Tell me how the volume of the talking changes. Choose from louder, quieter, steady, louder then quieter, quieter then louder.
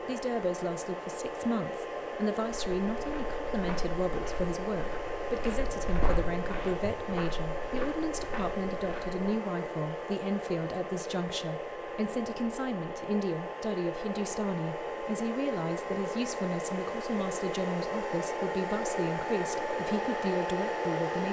steady.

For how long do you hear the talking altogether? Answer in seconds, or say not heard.
21 s.